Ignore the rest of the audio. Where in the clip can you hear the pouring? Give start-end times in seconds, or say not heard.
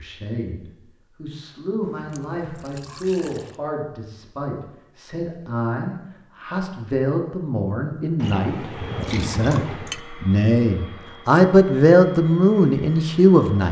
1.9-3.5, 8.2-10.0.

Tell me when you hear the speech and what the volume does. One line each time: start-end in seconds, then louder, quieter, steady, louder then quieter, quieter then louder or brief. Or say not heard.
0.0-13.6 louder.